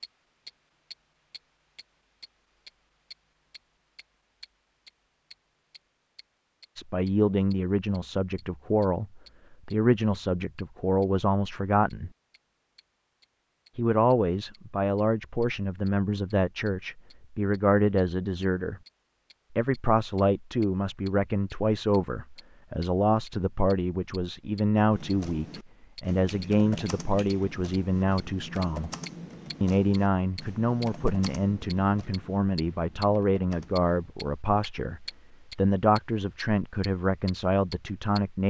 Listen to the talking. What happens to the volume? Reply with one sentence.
The loudness of the talking stays about the same.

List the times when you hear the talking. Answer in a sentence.
You can hear the talking from 6.8 to 12.1 s, from 13.8 to 18.8 s, from 19.5 to 28.9 s and from 29.6 to 38.4 s.